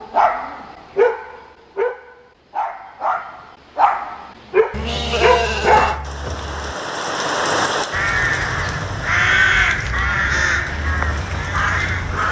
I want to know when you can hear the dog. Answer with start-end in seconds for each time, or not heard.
0.0-6.0.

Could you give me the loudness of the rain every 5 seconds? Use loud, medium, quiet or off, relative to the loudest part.
off, loud, medium.